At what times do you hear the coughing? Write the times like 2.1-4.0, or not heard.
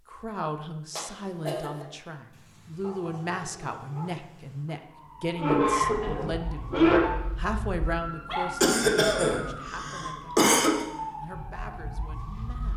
0.9-1.9, 5.3-7.0, 8.6-10.8.